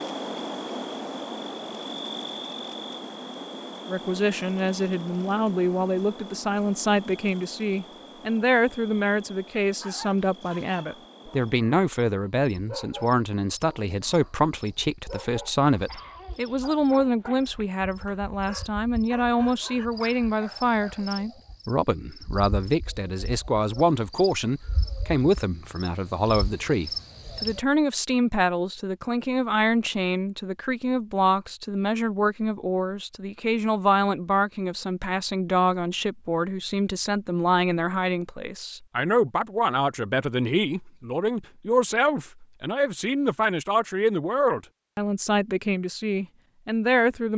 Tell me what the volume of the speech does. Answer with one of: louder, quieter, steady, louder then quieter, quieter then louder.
steady.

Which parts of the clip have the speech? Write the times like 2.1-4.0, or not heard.
3.9-47.3.